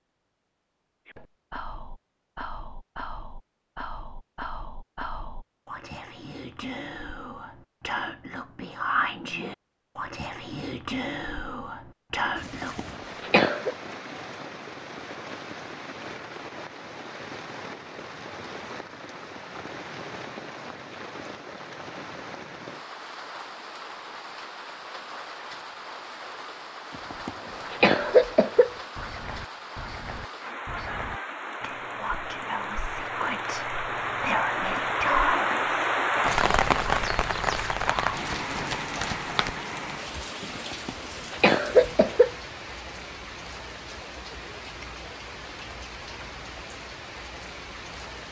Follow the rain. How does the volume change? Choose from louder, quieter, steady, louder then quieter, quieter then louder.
louder then quieter.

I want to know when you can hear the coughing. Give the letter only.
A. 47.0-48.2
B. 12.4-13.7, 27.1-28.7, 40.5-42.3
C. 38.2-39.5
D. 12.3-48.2
B.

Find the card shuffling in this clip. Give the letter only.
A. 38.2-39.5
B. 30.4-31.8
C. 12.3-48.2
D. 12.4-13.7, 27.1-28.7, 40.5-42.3
A.